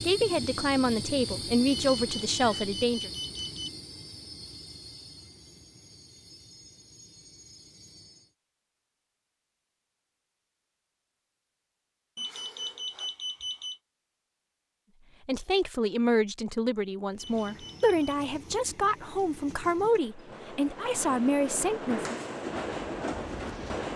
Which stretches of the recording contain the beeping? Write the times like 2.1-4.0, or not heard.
1.6-3.7, 12.2-13.8, 17.1-18.2.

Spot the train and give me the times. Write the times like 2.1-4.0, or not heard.
0.0-8.3, 17.1-23.9.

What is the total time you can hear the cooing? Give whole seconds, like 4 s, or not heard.
not heard.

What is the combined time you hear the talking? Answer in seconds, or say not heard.
10 s.